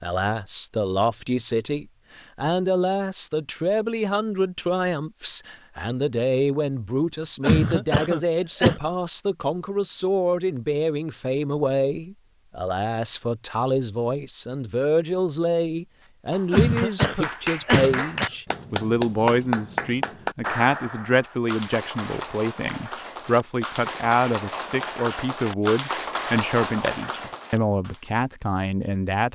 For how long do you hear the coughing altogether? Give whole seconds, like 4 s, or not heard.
3 s.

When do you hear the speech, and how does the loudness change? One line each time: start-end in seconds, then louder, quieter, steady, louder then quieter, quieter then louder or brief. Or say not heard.
0.0-29.3 steady.